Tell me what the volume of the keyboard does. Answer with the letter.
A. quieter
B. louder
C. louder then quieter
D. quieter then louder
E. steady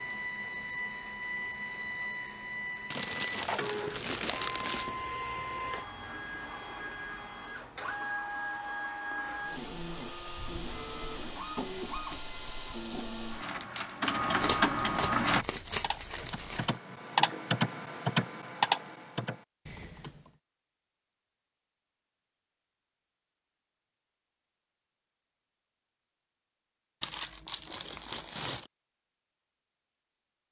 C.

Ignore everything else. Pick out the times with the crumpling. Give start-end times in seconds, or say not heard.
2.9-4.9, 14.4-16.8, 27.0-28.7.